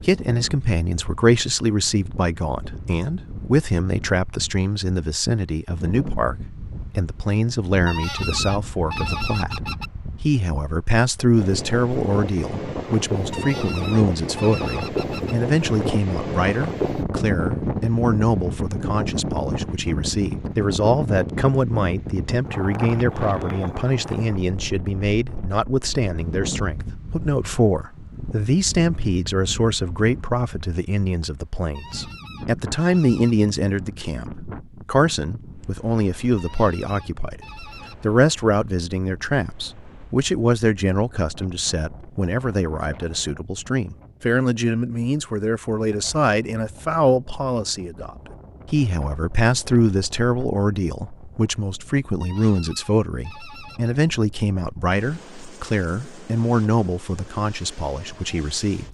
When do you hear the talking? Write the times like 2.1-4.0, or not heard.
0.0-37.4, 38.0-58.8.